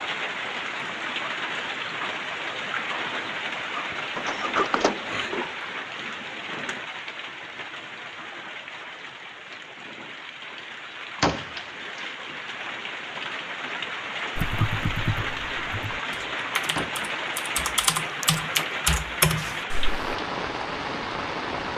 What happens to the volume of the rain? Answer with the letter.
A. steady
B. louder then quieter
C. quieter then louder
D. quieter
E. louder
C.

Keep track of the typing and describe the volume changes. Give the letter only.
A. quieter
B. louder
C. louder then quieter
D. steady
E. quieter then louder
B.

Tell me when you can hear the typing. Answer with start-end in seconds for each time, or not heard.
14.3-20.1.